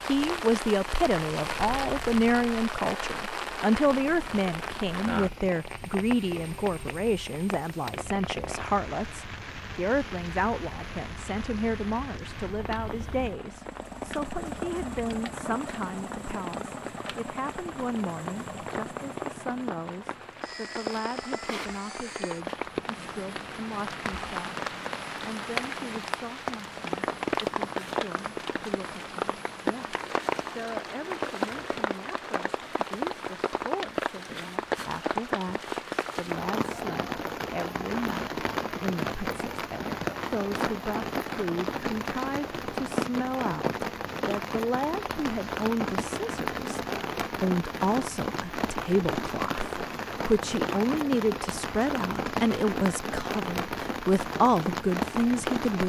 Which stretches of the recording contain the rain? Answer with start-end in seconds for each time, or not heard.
0.0-55.8.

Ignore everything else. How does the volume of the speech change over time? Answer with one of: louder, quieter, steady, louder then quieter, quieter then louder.
quieter then louder.